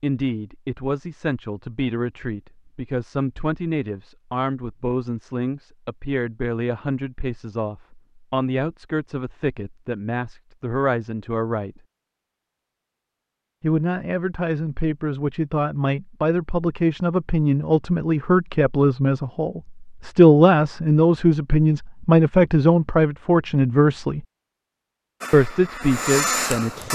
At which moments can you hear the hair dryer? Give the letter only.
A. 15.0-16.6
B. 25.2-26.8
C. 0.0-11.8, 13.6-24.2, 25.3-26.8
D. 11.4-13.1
B.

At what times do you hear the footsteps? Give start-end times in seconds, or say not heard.
not heard.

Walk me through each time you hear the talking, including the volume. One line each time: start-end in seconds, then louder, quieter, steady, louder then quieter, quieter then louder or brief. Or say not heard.
0.0-11.8 steady
13.6-24.2 louder
25.3-26.8 brief.